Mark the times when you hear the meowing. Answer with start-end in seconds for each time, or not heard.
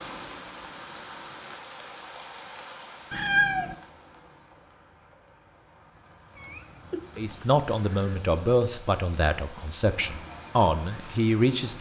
3.1-3.8, 6.3-8.2.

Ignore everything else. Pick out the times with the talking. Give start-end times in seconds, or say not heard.
7.2-11.7.